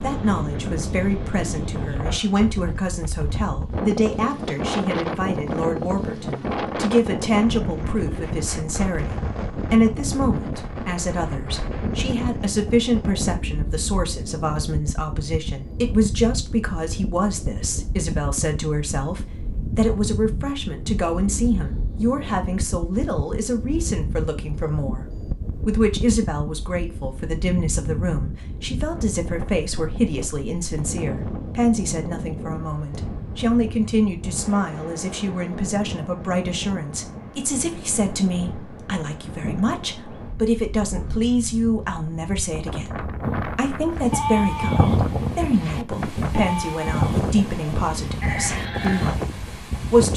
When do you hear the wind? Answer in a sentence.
You can hear the wind from 0.0 to 50.1 s.